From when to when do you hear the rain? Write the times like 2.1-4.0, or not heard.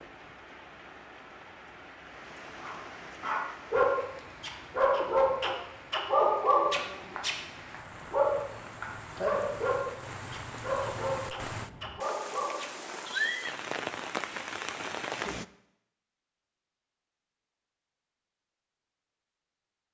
0.0-15.4.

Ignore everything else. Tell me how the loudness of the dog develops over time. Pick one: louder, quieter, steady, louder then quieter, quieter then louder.
quieter.